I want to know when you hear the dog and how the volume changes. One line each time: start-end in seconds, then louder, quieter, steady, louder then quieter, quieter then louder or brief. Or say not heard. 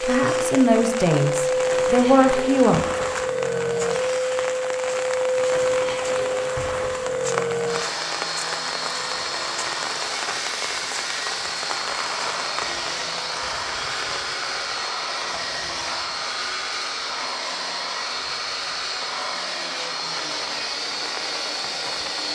not heard.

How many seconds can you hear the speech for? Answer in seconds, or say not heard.
3 s.